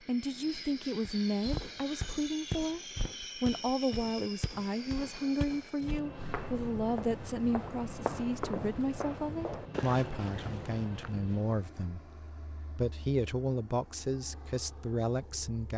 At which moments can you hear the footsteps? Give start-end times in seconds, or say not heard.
1.1-11.2.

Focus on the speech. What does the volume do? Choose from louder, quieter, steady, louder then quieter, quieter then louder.
steady.